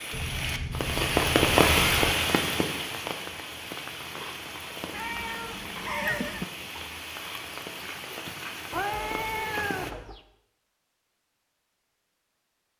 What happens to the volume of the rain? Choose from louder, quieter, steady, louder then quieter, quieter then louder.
quieter.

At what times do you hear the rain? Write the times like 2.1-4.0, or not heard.
0.0-9.9.